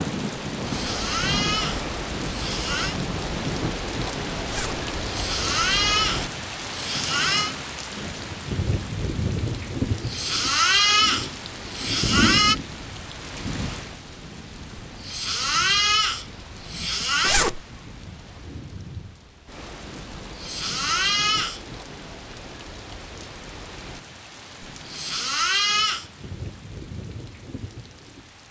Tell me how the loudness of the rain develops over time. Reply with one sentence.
The volume of the rain goes down.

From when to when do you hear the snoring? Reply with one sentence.
You can hear the snoring from 0.6 to 3.0 s, from 5.0 to 7.5 s, from 10.1 to 12.6 s, from 14.8 to 17.4 s, from 20.4 to 21.6 s and from 24.6 to 26.1 s.